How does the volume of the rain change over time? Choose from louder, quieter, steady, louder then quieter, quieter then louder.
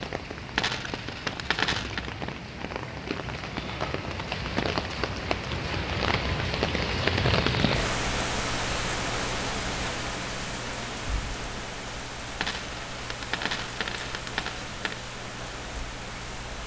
louder then quieter.